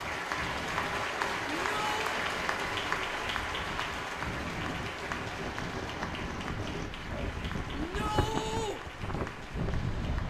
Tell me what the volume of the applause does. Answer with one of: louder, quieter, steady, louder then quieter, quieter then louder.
quieter.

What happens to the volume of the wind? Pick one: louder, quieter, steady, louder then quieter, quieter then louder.
louder.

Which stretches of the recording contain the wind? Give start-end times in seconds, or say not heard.
0.0-10.2.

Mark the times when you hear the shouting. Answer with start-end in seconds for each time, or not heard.
1.4-2.2, 7.8-8.8.